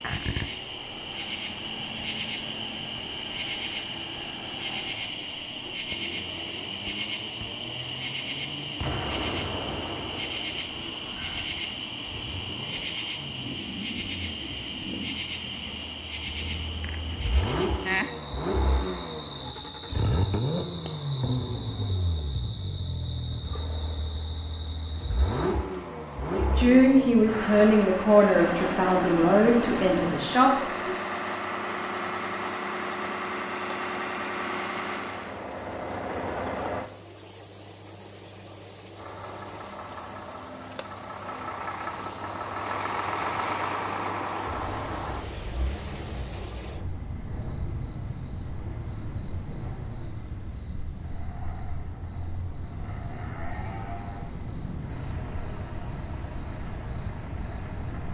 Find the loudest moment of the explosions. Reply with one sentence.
The volume of the explosions peaks at 9 seconds.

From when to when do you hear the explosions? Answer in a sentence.
You can hear the explosions from 8.8 to 11.2 s and from 44.5 to 46.5 s.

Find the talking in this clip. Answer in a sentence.
You can hear the talking from 26.4 to 30.9 s.